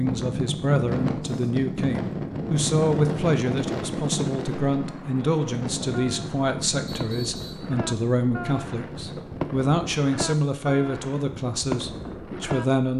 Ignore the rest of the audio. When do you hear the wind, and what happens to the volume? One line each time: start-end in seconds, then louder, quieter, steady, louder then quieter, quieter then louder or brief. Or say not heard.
0.0-9.6 quieter.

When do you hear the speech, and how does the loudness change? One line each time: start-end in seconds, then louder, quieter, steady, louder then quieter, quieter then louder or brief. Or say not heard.
0.0-12.9 steady.